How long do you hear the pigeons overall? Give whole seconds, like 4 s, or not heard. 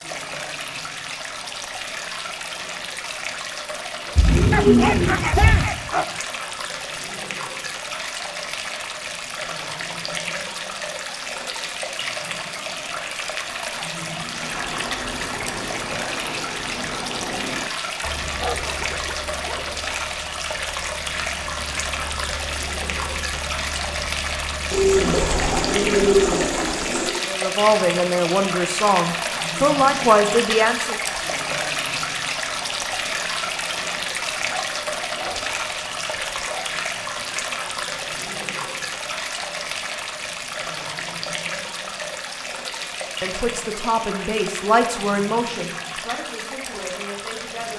4 s.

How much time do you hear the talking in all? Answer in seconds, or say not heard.
8 s.